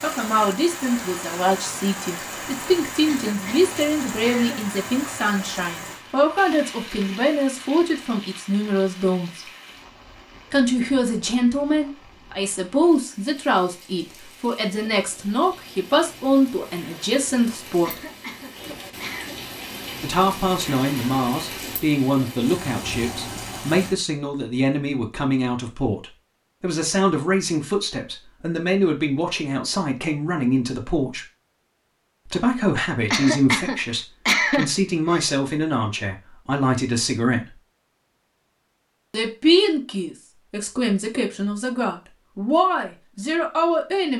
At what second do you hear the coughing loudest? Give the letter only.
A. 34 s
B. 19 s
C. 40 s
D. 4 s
A.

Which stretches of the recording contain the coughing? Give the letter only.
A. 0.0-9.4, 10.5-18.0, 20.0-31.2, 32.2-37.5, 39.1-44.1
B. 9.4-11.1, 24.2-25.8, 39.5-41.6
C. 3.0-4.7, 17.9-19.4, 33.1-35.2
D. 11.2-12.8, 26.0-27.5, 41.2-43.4
C.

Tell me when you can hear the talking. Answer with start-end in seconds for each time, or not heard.
0.0-9.4, 10.5-18.0, 20.0-31.2, 32.2-37.5, 39.1-44.1.